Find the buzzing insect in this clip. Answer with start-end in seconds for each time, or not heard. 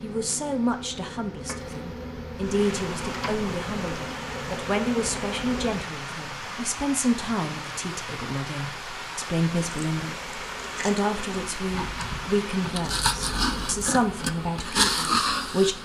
0.0-5.8, 9.8-15.8.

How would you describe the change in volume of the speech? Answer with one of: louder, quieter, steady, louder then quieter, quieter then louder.
steady.